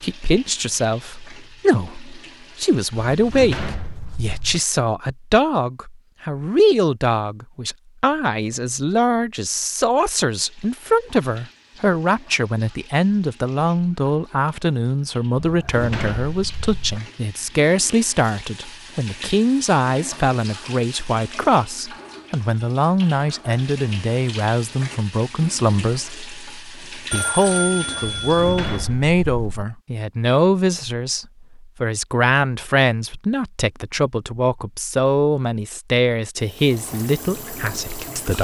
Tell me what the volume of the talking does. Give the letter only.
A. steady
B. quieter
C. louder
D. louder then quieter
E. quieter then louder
A.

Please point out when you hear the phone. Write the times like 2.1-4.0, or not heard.
27.1-28.7.